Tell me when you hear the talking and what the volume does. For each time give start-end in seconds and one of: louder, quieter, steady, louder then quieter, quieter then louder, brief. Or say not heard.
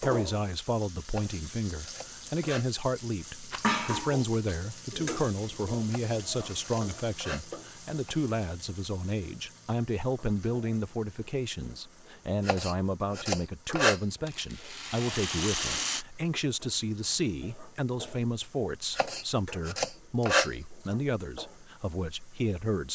0.0-22.9 steady.